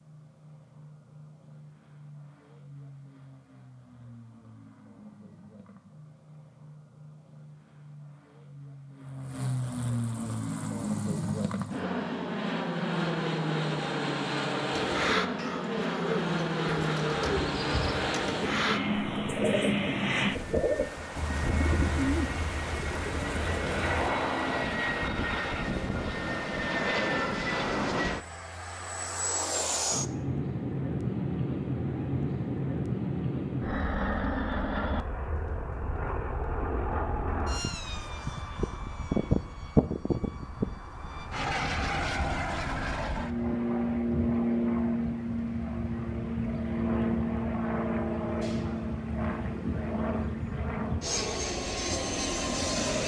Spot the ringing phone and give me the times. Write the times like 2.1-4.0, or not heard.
not heard.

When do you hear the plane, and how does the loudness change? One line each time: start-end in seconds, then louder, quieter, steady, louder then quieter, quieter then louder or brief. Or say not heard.
0.0-53.0 louder.